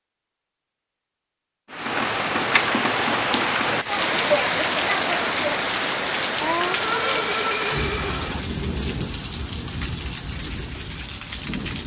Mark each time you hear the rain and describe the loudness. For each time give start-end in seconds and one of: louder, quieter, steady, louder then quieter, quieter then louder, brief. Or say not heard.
1.7-11.8 quieter.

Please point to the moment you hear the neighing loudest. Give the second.
7 s.